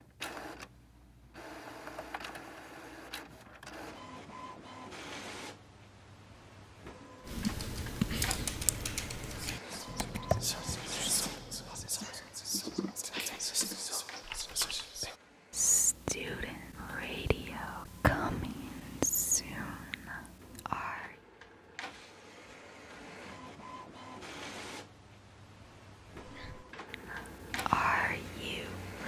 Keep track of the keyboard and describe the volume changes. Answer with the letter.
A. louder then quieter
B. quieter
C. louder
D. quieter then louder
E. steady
B.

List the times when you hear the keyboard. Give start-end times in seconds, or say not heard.
7.2-14.9.